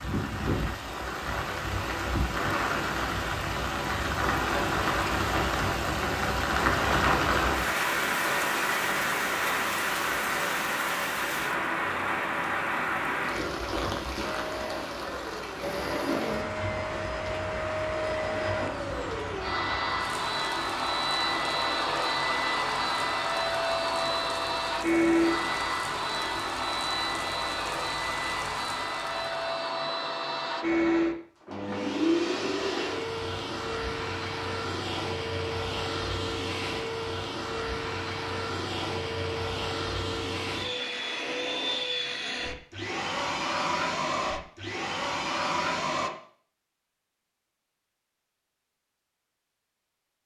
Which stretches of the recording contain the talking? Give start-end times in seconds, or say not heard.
not heard.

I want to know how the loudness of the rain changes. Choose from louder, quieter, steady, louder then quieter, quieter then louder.
quieter.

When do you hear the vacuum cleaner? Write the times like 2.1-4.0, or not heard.
14.2-46.1.